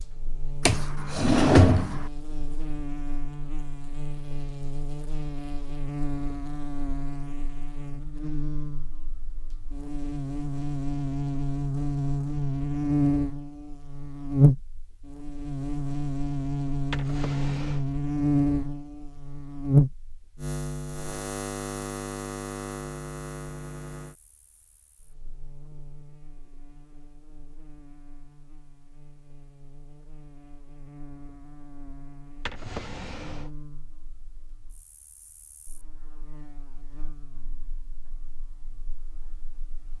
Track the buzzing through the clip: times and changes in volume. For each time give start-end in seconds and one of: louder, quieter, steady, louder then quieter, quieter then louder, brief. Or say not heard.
0.0-39.9 louder then quieter.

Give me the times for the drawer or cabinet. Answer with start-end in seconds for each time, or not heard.
0.7-2.1, 16.8-17.9, 32.3-33.5.